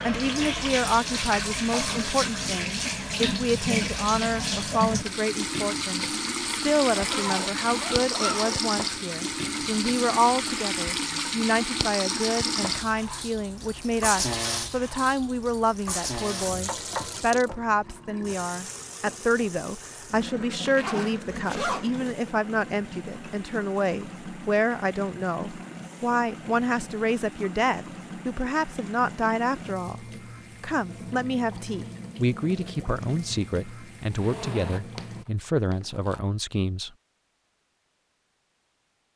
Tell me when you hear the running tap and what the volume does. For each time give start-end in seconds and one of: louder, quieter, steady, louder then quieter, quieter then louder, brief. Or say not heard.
0.0-35.2 quieter.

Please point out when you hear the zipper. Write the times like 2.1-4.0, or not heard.
6.9-8.6, 20.6-22.1, 34.1-35.0, 35.7-36.2.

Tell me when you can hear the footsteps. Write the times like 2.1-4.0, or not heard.
not heard.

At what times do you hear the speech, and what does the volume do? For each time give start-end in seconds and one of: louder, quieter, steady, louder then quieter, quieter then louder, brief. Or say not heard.
0.1-36.9 steady.